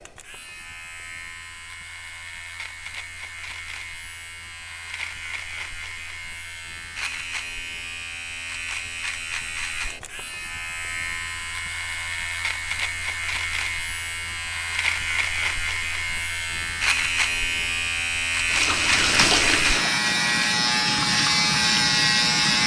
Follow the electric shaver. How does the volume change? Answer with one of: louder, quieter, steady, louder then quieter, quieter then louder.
louder.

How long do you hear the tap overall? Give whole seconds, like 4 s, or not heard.
4 s.